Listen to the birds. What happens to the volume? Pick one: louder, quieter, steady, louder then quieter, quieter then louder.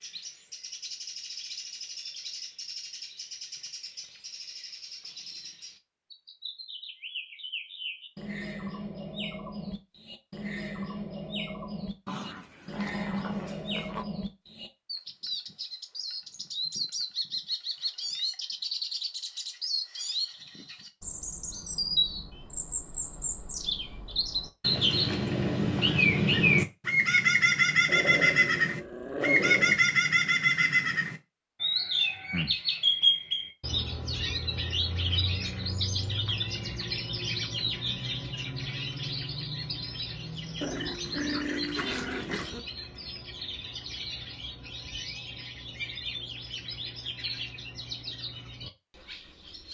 louder then quieter.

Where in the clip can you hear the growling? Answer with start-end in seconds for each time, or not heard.
12.1-14.1, 27.9-29.8, 40.6-42.6.